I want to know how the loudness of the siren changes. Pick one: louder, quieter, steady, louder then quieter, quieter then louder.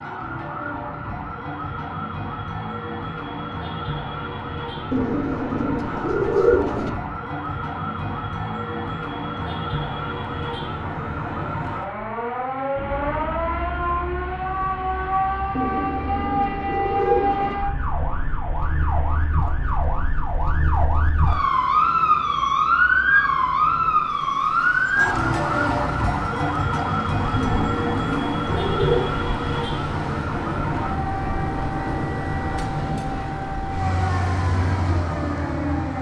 louder then quieter.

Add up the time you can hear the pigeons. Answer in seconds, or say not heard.
6 s.